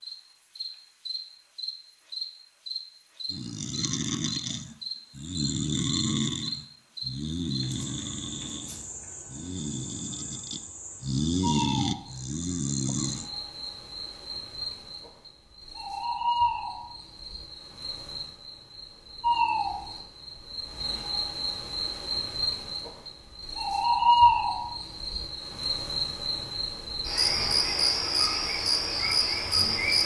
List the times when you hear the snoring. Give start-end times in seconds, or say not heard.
3.3-13.3.